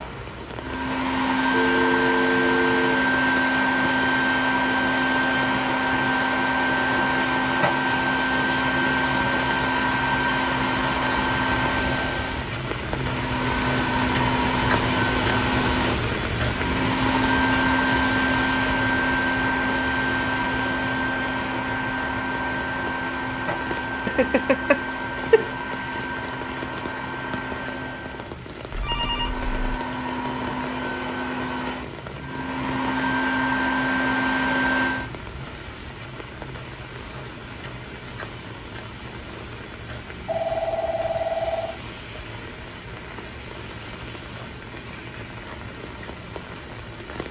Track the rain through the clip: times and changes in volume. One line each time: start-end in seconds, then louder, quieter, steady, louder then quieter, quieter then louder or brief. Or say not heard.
0.0-47.2 louder then quieter.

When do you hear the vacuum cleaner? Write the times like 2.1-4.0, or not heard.
0.0-35.1.